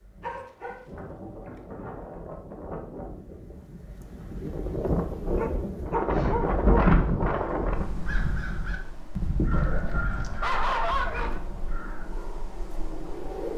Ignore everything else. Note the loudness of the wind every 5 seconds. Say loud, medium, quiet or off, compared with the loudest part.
medium, loud, medium.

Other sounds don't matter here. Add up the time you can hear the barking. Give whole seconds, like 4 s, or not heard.
5 s.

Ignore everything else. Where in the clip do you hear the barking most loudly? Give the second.
11 s.